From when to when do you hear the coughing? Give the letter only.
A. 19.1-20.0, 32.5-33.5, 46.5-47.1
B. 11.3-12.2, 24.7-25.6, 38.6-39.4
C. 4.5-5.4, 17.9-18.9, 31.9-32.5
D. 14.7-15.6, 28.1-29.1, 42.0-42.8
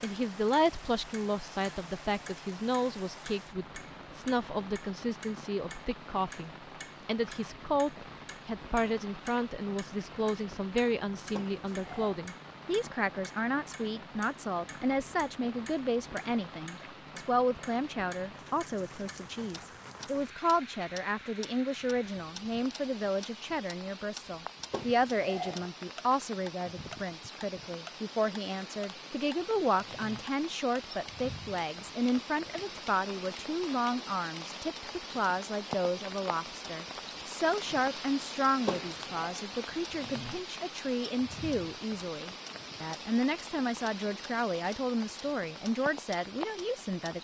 B.